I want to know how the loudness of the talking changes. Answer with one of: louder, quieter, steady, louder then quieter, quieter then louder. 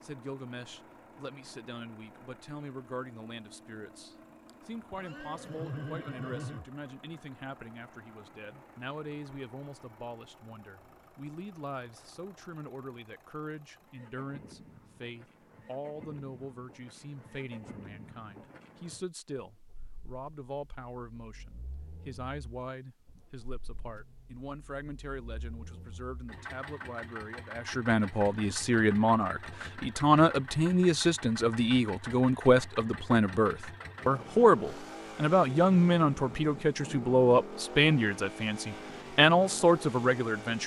louder.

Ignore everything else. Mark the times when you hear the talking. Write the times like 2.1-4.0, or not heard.
0.0-40.6.